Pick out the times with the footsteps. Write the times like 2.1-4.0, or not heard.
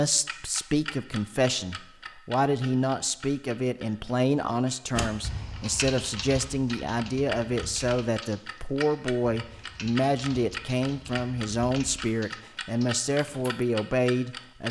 not heard.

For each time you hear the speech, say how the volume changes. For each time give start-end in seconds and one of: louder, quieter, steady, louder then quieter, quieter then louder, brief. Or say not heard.
0.0-14.6 steady.